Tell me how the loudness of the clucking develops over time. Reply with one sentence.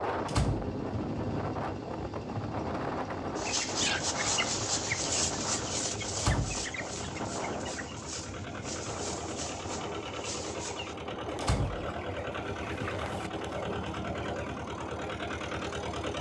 The loudness of the clucking goes down.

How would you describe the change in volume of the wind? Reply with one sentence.
The volume of the wind goes down.